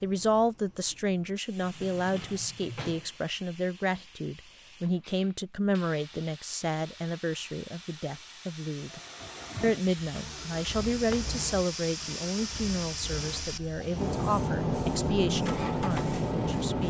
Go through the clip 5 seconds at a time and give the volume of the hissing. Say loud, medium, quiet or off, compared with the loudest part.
quiet, quiet, medium, loud.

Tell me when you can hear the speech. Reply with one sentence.
You can hear the speech from 0.0 to 9.0 s and from 9.6 to 16.8 s.